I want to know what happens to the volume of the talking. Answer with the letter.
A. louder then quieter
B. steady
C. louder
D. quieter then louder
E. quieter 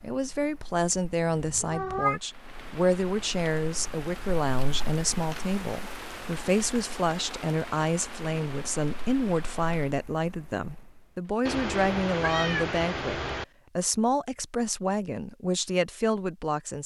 B.